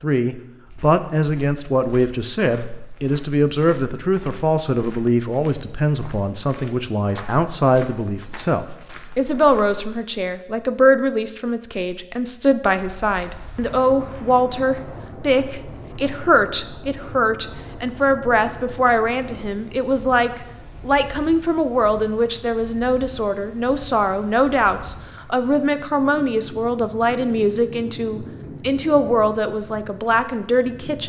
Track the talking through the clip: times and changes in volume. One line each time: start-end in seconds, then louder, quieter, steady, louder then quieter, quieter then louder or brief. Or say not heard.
0.0-31.0 steady.